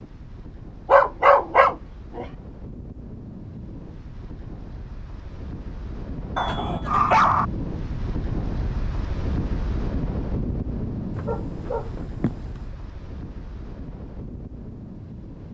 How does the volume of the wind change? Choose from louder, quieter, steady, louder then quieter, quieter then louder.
louder then quieter.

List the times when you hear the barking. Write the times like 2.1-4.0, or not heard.
0.8-2.2, 6.3-7.5, 11.2-12.3.